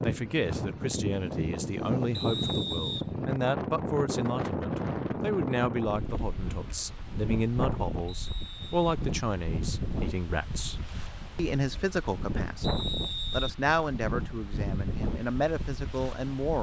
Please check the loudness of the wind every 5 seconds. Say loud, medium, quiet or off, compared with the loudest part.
loud, loud, medium, medium.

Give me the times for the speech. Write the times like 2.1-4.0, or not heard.
0.0-10.8, 11.3-16.5.